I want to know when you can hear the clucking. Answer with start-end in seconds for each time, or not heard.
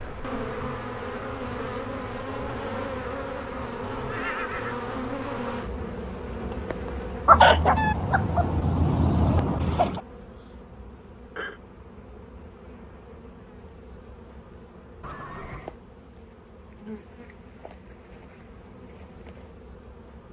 7.2-10.0.